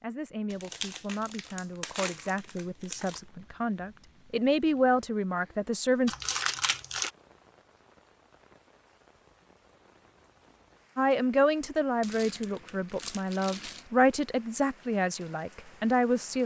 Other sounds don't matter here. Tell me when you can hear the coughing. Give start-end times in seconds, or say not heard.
not heard.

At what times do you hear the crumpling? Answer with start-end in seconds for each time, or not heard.
0.5-3.2, 6.0-7.1, 12.0-13.8.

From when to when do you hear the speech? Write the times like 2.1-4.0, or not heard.
0.0-6.2, 10.9-16.4.